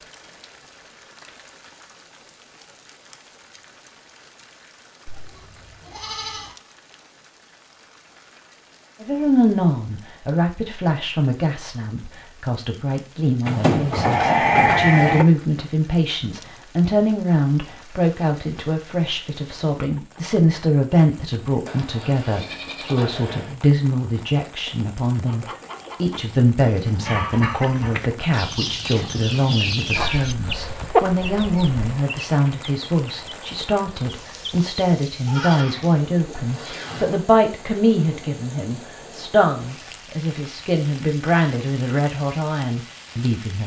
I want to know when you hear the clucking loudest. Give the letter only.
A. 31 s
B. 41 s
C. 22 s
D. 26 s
A.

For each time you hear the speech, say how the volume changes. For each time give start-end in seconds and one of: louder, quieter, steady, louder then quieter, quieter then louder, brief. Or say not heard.
9.0-43.6 steady.